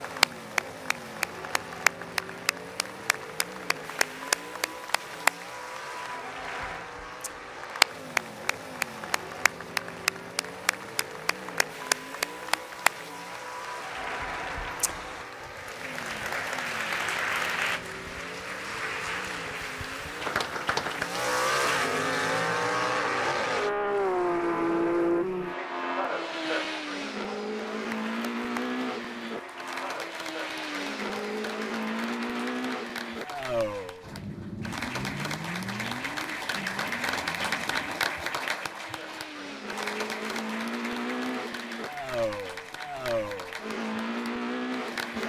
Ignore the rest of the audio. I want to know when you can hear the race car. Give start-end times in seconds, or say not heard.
0.0-45.2.